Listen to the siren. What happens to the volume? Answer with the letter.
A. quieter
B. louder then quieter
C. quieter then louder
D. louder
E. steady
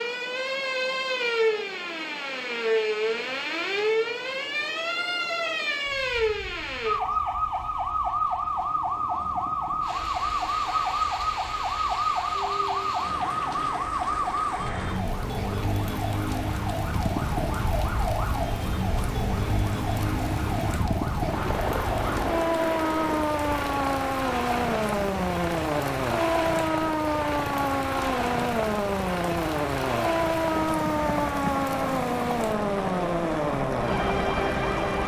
E.